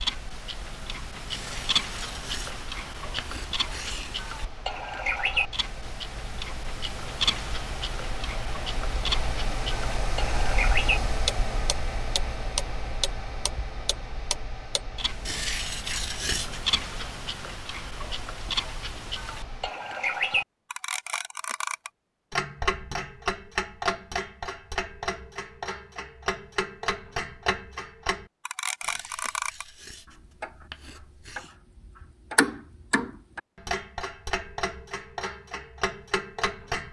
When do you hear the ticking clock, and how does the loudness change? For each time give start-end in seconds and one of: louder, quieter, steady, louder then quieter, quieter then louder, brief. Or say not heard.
0.0-29.6 steady
30.4-36.8 louder then quieter.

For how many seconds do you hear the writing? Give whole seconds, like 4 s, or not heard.
7 s.